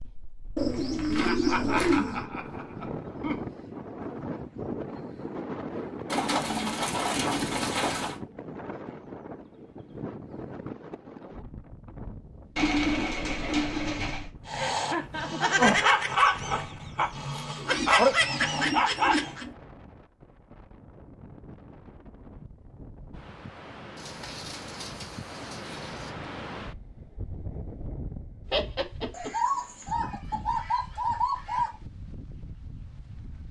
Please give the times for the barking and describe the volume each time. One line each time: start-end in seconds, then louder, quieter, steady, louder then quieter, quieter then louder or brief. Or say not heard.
14.4-19.4 quieter then louder.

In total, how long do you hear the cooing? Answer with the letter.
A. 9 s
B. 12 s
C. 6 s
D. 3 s
B.